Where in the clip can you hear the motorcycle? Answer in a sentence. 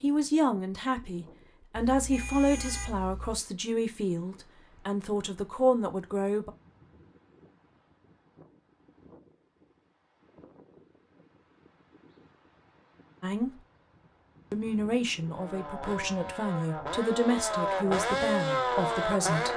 You can hear the motorcycle from 15.2 to 19.5 s.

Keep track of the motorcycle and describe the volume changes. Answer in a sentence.
The volume of the motorcycle goes up.